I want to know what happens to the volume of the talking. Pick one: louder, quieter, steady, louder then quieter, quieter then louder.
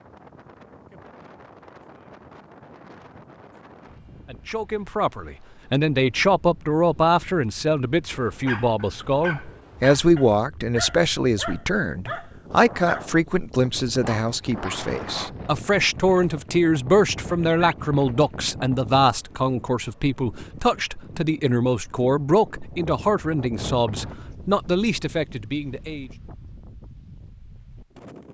steady.